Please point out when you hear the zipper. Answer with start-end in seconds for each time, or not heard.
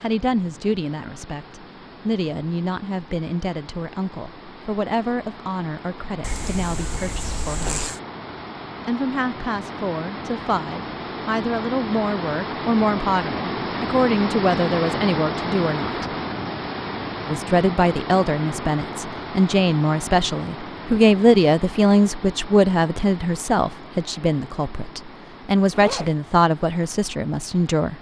6.2-8.0, 25.7-26.1.